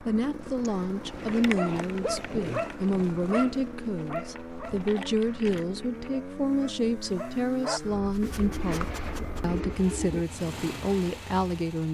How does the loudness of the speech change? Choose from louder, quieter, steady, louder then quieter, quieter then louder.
steady.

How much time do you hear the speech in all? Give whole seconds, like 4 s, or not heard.
12 s.